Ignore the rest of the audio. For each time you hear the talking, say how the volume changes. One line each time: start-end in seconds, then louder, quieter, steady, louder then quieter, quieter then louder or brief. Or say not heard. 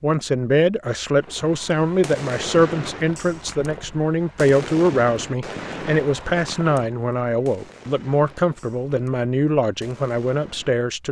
0.0-11.0 steady.